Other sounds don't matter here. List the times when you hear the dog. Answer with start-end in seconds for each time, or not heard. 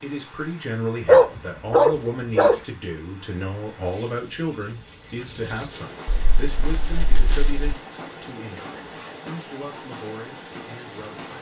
1.1-2.6, 6.0-7.8.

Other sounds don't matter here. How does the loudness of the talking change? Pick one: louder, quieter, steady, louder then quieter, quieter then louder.
quieter.